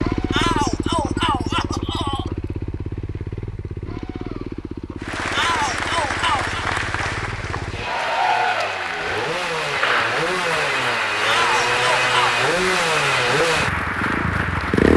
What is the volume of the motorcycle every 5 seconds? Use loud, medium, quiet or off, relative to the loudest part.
medium, medium, loud.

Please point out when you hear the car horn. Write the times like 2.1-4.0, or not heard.
not heard.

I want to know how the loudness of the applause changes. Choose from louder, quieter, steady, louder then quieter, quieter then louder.
steady.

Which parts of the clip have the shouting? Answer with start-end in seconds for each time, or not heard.
0.3-2.3, 5.3-6.6, 11.2-12.4.